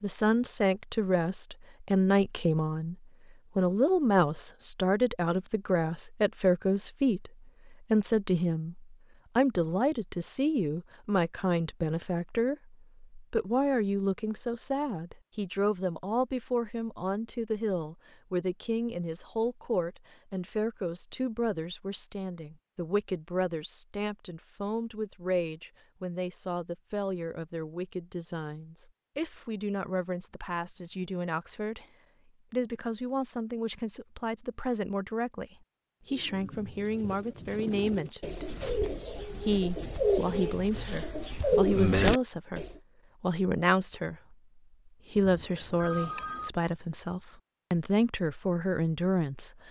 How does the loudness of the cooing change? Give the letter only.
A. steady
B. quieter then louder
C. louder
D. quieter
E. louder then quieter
C.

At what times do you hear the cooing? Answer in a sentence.
The cooing can be heard from 36.1 to 42.7 s.